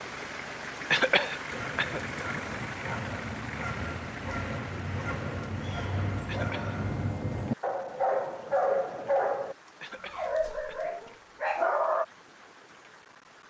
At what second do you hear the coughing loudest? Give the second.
1 s.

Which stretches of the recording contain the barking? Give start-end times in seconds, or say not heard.
1.5-12.1.